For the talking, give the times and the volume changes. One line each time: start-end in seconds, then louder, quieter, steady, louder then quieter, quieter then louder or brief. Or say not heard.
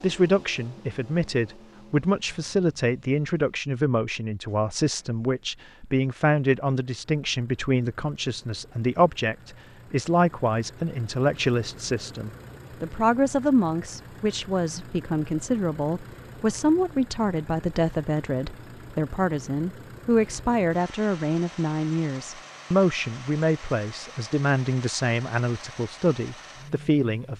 0.0-27.3 steady.